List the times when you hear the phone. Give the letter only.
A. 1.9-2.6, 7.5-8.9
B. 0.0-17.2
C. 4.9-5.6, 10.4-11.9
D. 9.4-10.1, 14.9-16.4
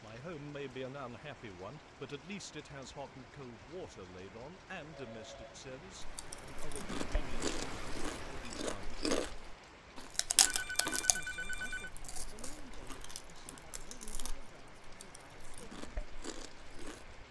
C.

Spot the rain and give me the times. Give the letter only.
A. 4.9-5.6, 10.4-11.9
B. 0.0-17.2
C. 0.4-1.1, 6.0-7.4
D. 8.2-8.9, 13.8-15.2
B.